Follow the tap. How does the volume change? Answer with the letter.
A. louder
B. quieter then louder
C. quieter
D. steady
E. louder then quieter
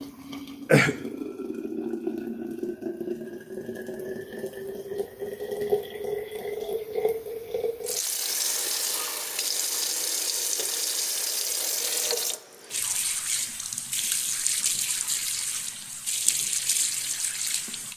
D.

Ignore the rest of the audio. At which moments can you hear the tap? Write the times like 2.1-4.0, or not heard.
0.0-17.9.